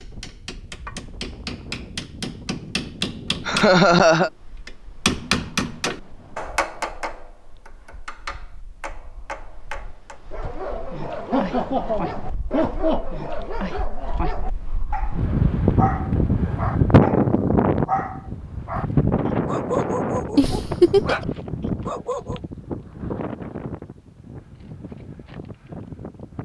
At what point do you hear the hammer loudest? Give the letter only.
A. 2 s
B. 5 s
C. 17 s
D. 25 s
B.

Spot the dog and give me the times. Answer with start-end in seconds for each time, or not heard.
10.3-22.4.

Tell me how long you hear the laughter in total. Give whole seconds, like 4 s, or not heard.
4 s.